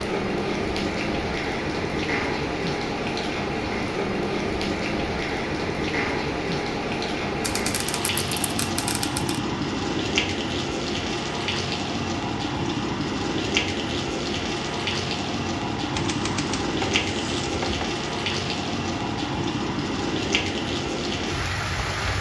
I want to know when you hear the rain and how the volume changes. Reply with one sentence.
The rain can be heard from 0.0 to 22.1 s, at a steady volume.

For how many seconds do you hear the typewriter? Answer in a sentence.
The typewriter can be heard for 4 seconds in total.